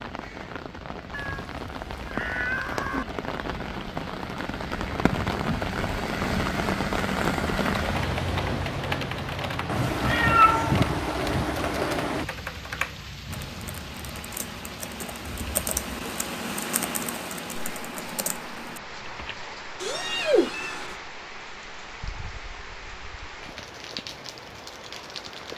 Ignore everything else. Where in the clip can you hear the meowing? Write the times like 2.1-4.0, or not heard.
1.1-3.0, 9.7-12.2, 19.8-20.9.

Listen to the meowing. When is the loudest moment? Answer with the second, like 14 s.
10 s.